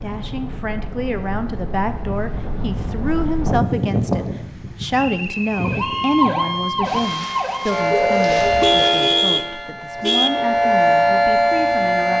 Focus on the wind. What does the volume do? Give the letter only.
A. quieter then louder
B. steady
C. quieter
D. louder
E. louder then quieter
E.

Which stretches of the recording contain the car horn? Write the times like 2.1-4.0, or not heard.
8.4-10.3.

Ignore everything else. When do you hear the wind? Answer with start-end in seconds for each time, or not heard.
0.0-9.0.